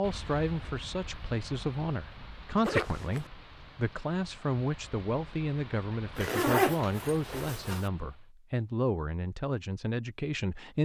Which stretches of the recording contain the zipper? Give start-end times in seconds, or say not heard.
2.6-3.2, 6.2-7.9.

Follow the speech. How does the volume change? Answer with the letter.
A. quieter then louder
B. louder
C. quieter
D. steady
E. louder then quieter
D.